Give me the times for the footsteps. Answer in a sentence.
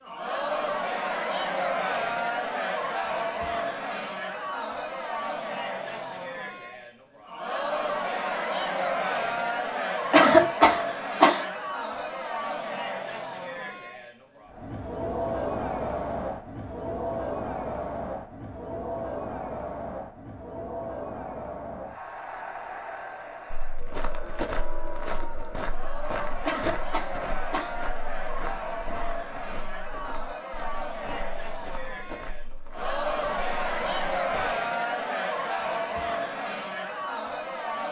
You can hear the footsteps from 23.5 to 34.5 s.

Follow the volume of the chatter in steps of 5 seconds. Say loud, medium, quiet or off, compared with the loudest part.
loud, loud, loud, loud, medium, medium, loud, loud.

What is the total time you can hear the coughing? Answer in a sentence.
You can hear the coughing for 3 seconds altogether.